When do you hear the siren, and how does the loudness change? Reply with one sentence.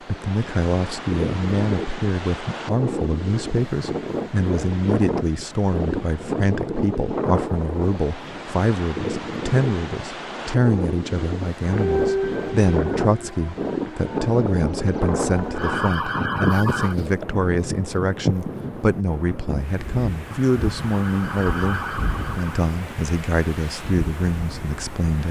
The siren can be heard from 11.7 to 16.9 s, getting quieter then louder; and briefly from 20.2 to 22.6 s.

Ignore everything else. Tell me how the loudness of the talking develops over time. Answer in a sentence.
The loudness of the talking stays about the same.